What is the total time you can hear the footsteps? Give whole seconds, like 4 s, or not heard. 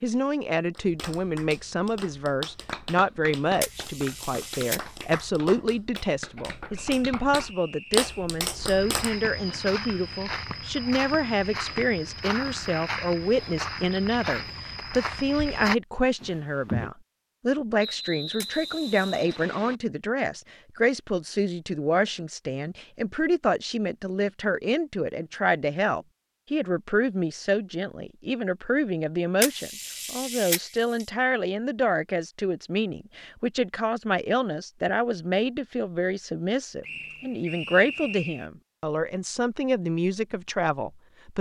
8 s.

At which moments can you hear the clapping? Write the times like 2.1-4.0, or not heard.
0.7-9.2.